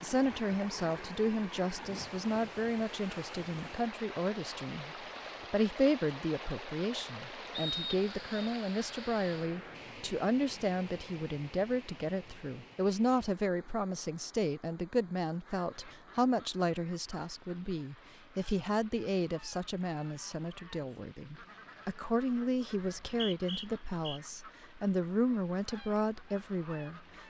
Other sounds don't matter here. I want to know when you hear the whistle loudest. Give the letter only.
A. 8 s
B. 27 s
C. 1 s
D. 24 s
A.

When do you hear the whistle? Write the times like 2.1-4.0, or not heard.
7.5-8.5, 22.8-24.2.